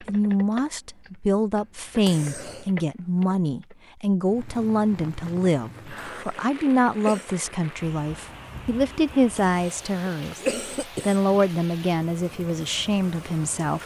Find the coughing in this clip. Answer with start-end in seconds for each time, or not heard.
2.0-2.7, 6.0-7.3, 9.5-11.2.